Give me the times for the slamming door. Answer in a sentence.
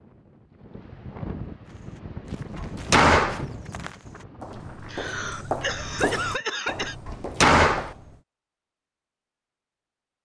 The slamming door can be heard from 2.5 to 3.5 s and from 7.0 to 8.0 s.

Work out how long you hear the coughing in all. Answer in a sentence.
The coughing can be heard for 2 seconds in total.